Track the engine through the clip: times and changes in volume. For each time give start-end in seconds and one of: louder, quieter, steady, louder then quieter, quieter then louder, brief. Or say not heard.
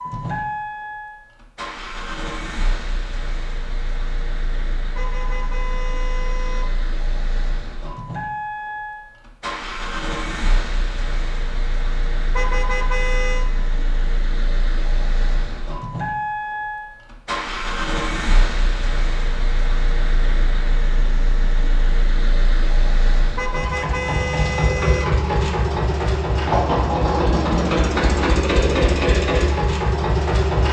0.0-30.6 louder.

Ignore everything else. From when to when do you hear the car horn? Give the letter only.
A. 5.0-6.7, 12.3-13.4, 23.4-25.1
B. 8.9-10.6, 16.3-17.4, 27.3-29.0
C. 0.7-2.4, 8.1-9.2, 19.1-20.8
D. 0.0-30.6
A.